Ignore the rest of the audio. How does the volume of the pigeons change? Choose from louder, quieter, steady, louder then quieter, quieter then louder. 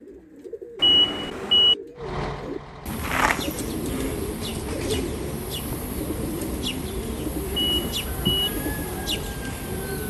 louder.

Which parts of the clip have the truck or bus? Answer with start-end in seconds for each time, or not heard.
1.9-10.0.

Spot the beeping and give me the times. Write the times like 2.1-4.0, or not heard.
0.8-1.8, 7.5-8.5.